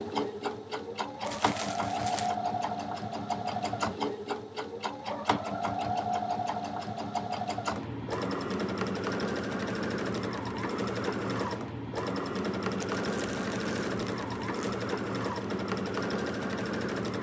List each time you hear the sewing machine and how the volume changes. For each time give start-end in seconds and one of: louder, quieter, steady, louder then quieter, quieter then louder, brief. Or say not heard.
0.0-17.1 steady.